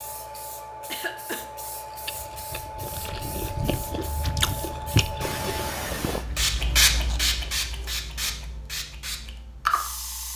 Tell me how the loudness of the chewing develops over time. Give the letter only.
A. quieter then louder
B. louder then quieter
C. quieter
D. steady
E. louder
B.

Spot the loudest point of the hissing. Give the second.
7 s.